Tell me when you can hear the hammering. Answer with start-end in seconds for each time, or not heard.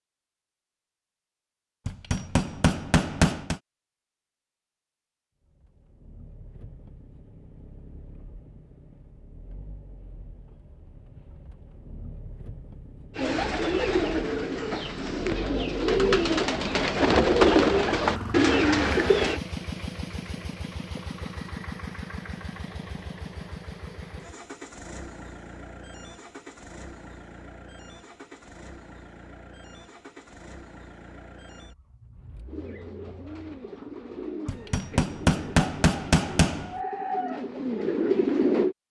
1.9-3.6, 34.5-36.8.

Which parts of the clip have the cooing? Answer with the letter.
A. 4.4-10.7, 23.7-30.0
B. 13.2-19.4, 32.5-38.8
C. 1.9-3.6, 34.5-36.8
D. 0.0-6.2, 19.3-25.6
B.